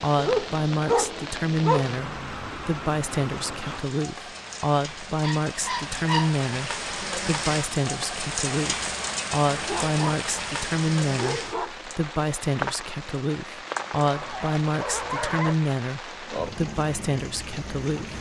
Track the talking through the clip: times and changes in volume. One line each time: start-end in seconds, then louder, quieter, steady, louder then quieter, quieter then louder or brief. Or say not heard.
0.0-18.1 steady.